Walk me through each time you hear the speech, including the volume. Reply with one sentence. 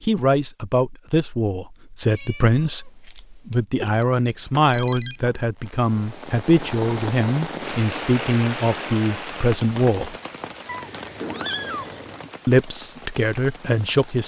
The speech can be heard from 0.0 to 10.2 s, at a steady volume; and briefly from 12.4 to 14.2 s.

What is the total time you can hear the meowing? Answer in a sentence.
You can hear the meowing for 3 seconds altogether.